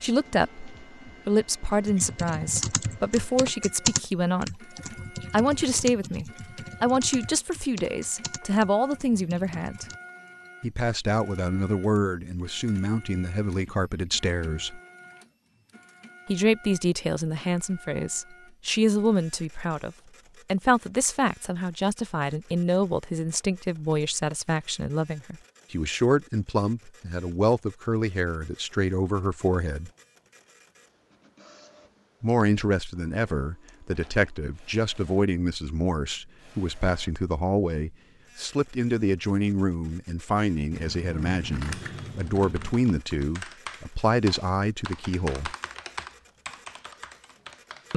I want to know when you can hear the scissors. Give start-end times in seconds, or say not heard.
40.7-42.8.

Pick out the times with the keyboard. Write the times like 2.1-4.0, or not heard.
1.9-10.0, 41.4-47.9.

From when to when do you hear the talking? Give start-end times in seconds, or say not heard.
0.0-4.7, 5.3-9.8, 10.6-14.8, 16.2-29.9, 32.2-45.5.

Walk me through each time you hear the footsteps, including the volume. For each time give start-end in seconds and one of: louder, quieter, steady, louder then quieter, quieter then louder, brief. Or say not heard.
not heard.